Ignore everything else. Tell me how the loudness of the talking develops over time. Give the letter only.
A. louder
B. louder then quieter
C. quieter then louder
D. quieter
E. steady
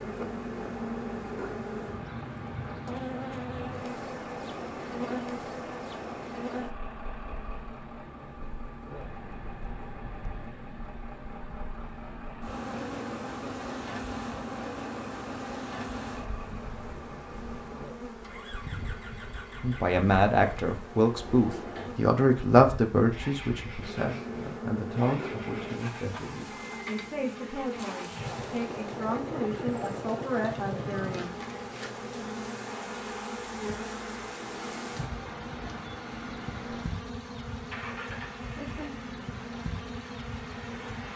D.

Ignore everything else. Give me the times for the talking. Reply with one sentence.
You can hear the talking from 19.6 to 31.3 s.